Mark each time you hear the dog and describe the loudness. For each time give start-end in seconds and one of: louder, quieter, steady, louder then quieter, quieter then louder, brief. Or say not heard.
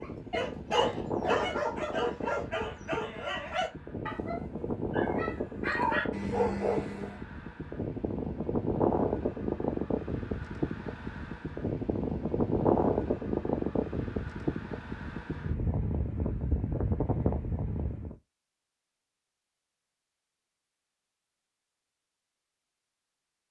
0.0-7.2 quieter then louder.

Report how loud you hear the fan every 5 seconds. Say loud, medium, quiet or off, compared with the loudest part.
medium, loud, loud, loud, off.